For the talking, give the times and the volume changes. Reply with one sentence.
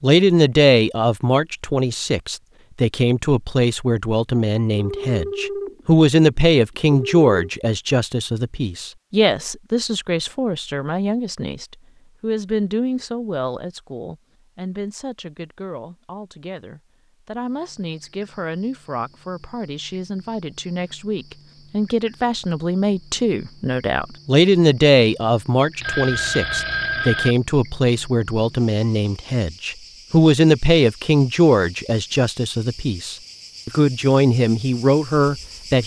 The talking can be heard from 0.0 to 35.8 s, getting quieter then louder.